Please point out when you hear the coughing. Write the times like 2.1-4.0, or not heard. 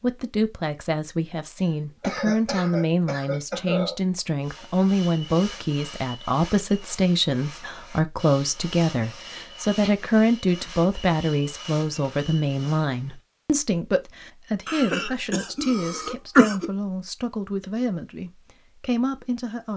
1.6-4.0, 9.3-9.9, 14.7-16.6.